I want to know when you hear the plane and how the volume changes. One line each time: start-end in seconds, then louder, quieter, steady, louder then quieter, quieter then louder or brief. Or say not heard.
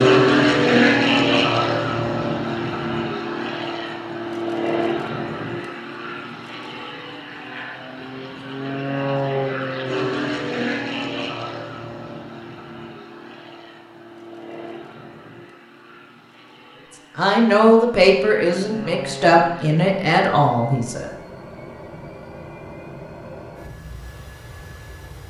0.0-25.2 quieter.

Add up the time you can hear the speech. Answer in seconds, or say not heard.
4 s.